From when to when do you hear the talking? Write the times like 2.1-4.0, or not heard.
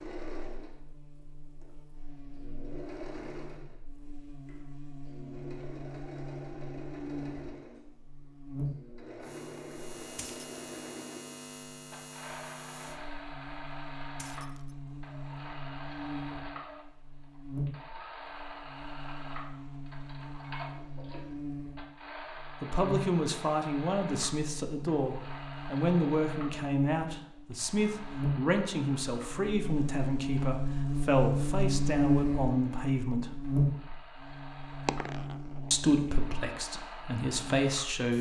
22.6-33.4, 35.7-38.1.